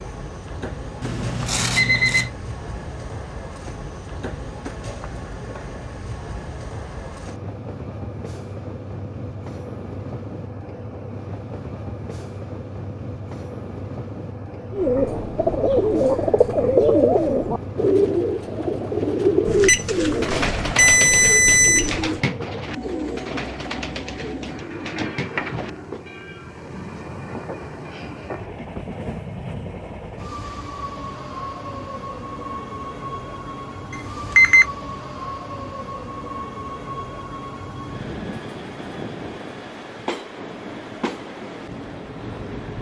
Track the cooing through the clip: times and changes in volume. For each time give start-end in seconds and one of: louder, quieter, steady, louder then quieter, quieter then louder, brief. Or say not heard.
14.7-26.0 quieter.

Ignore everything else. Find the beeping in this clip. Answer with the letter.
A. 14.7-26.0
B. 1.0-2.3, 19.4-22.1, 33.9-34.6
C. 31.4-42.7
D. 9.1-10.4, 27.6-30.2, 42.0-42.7
B.